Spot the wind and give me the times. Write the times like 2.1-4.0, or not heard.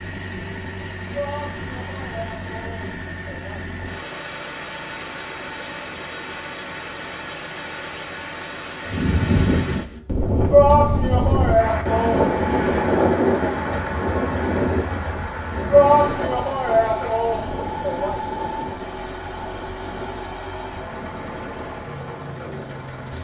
8.8-23.1.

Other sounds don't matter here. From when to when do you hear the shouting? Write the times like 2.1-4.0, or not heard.
1.1-3.7, 10.5-12.2, 15.7-18.2.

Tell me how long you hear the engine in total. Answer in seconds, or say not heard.
23 s.